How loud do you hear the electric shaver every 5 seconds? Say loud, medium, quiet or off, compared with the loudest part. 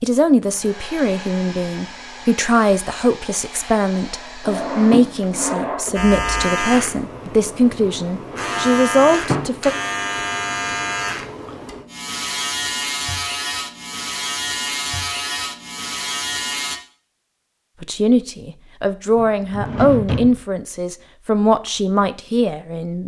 off, loud, loud, loud, off.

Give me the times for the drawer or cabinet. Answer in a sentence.
The drawer or cabinet can be heard from 4.5 to 6.0 s, from 8.3 to 9.6 s and from 19.1 to 20.4 s.